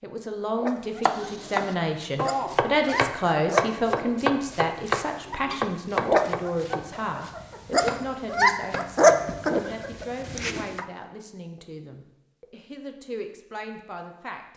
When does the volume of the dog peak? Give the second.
9 s.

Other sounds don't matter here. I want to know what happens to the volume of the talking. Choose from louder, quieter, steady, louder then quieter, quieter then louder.
quieter.